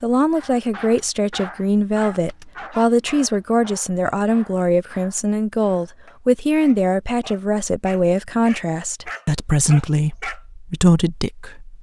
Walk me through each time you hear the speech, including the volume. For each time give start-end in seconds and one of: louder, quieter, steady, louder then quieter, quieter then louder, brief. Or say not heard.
0.0-11.7 steady.